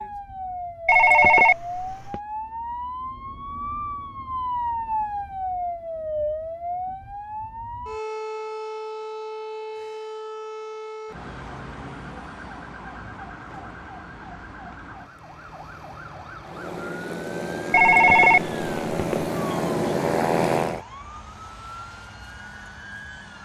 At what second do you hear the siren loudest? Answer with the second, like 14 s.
5 s.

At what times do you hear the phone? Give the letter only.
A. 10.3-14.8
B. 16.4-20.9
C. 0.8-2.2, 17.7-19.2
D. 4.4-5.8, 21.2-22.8
C.